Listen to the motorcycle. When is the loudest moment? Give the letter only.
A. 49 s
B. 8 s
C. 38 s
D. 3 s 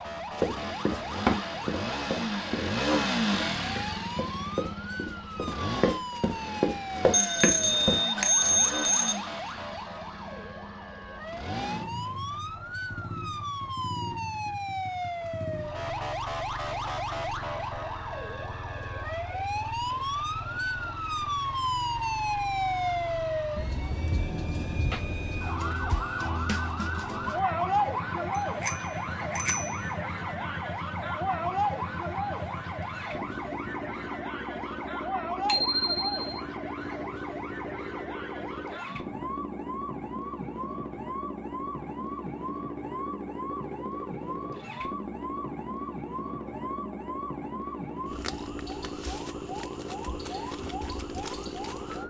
D.